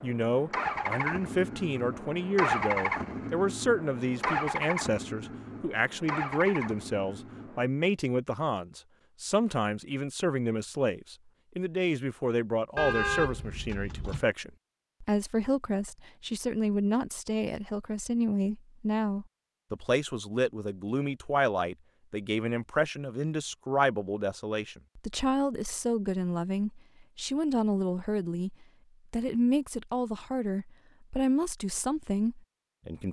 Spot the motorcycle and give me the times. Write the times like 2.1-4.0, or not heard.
0.0-7.7.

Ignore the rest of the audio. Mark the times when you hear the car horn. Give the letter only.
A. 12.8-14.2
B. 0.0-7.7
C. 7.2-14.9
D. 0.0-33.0
A.